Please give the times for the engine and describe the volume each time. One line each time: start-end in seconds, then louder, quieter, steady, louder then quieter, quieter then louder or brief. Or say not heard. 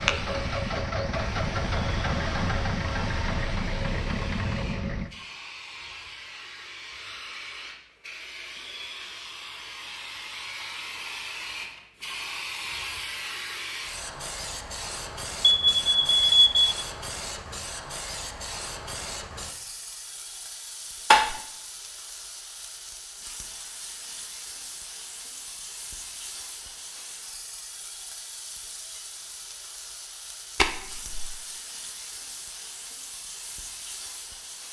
0.0-5.1 steady.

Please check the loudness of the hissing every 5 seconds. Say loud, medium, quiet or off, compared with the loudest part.
medium, medium, loud, loud, medium, medium, medium.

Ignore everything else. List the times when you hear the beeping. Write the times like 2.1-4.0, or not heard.
15.4-16.7.